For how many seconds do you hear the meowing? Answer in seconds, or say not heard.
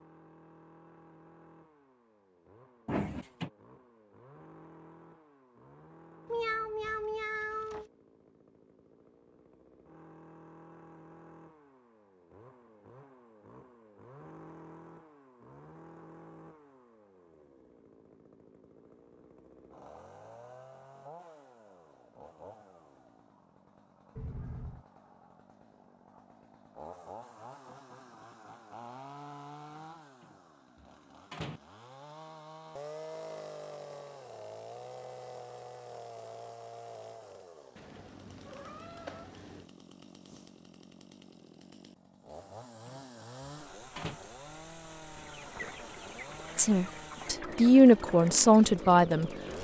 4 s.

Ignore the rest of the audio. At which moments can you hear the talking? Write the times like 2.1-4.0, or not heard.
46.5-49.3.